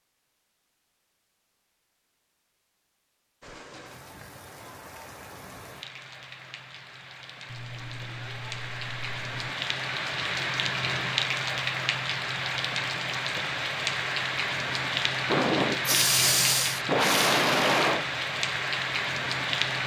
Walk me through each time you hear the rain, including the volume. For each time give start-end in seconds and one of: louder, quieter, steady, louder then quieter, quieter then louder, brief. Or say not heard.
3.4-19.8 louder.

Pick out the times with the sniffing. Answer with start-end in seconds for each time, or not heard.
15.3-18.1.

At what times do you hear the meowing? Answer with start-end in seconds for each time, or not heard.
7.5-9.5.